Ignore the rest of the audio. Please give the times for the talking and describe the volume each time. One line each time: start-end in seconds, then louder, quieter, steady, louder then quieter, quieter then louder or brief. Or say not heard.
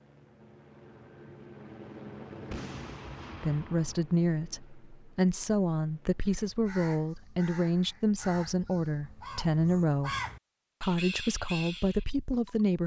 3.4-10.2 steady
10.8-12.8 brief.